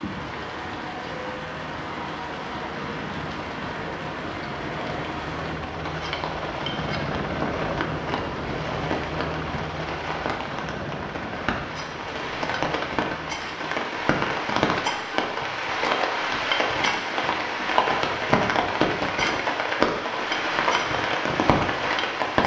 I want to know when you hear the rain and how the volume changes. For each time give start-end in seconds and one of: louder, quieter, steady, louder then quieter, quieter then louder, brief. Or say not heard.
0.0-22.4 louder.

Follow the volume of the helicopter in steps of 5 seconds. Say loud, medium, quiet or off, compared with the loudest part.
medium, loud, medium, off, off.